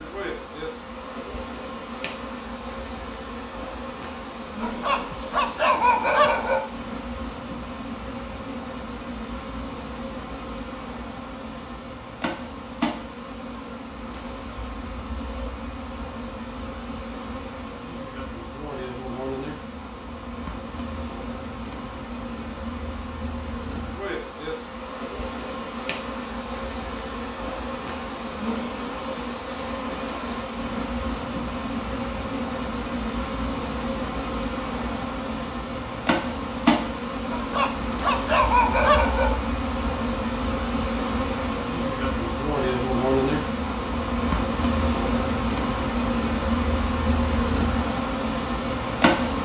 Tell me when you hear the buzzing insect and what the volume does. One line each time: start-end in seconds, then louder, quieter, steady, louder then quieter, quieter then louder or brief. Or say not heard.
0.0-49.4 louder.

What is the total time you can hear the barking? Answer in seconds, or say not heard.
4 s.